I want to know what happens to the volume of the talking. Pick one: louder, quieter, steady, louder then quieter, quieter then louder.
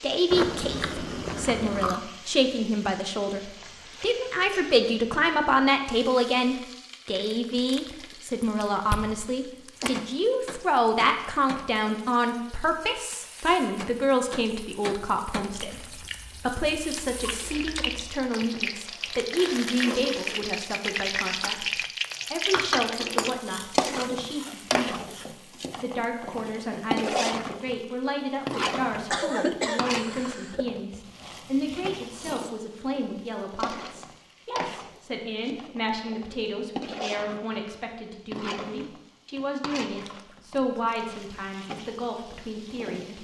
quieter.